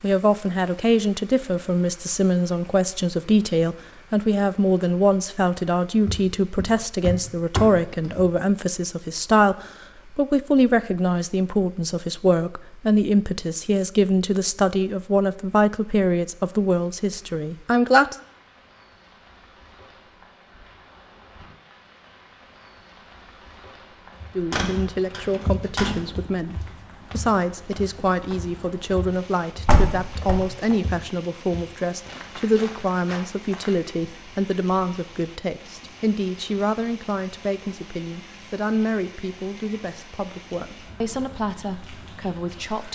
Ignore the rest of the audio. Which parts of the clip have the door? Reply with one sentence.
The door can be heard from 6.0 to 8.3 s, from 24.5 to 26.1 s and from 29.6 to 30.8 s.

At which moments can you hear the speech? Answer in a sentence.
The speech can be heard from 0.0 to 18.1 s and from 24.4 to 42.9 s.